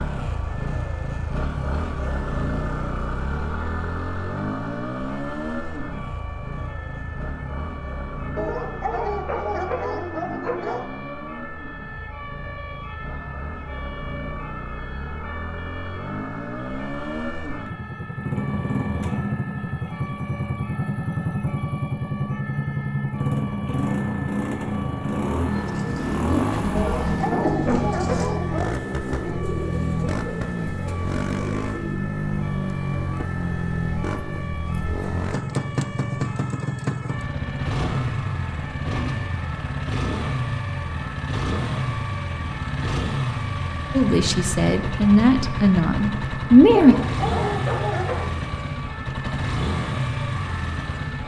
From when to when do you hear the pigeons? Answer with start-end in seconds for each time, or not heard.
25.5-32.0.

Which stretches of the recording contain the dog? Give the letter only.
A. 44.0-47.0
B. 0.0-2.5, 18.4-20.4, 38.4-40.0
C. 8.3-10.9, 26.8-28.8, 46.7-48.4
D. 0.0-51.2
C.